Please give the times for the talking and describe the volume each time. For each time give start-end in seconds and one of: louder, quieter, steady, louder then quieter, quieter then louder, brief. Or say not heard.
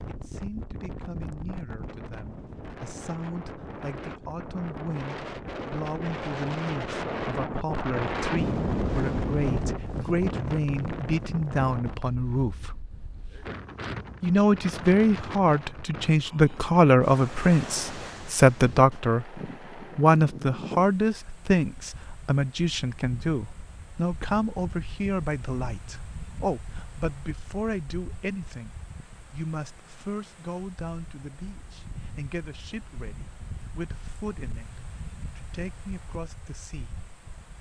0.1-12.8 louder
14.2-37.0 quieter.